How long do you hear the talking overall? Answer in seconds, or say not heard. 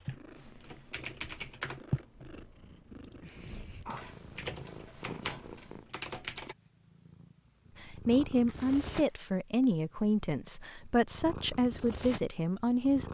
5 s.